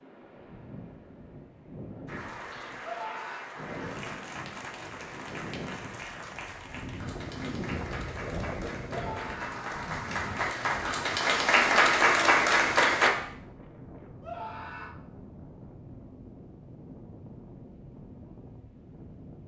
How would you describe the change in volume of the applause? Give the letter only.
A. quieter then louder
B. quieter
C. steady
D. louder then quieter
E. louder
E.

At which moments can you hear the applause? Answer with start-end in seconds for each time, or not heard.
2.0-13.1.